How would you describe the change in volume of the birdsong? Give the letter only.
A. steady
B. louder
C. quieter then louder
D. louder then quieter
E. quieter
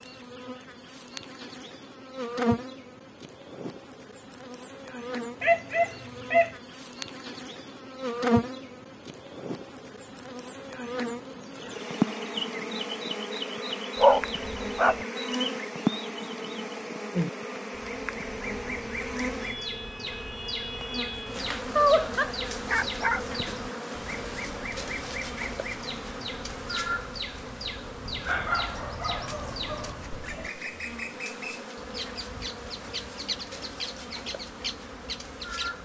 A.